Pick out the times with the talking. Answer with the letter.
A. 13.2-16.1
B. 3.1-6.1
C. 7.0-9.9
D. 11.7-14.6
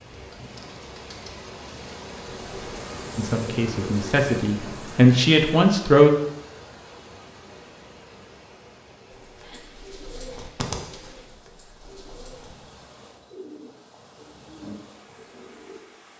B.